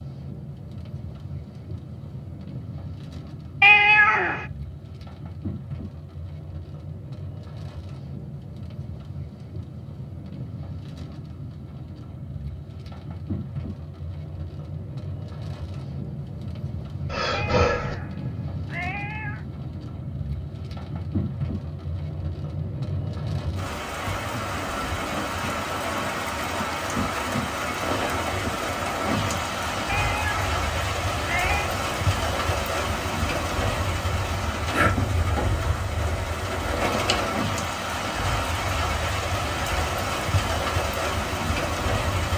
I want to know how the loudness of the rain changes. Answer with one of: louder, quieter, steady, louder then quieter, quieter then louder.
louder.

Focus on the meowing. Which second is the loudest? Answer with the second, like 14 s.
4 s.